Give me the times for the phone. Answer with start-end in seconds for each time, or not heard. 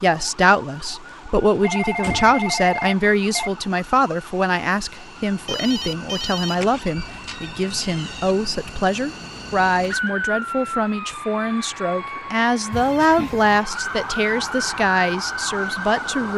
1.6-3.5, 5.5-6.5, 12.7-13.2.